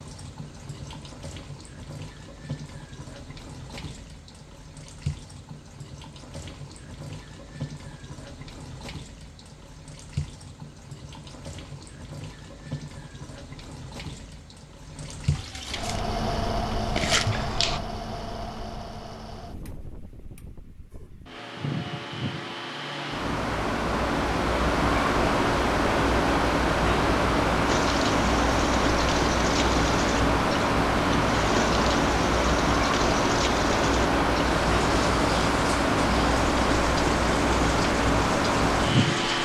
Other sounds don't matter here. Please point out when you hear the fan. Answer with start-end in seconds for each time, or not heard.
15.7-39.4.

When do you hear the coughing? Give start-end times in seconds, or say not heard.
not heard.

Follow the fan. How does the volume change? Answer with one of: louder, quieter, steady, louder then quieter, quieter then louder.
louder.